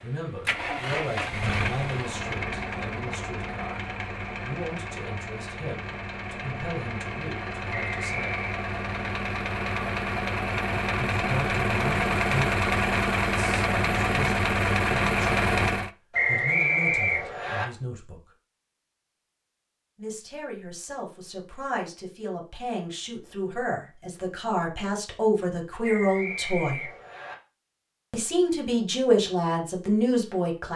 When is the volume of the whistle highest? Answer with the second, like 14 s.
17 s.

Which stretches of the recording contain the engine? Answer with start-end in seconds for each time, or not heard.
0.0-15.9.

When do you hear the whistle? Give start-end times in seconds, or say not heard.
7.7-8.7, 16.1-17.6, 25.8-27.4.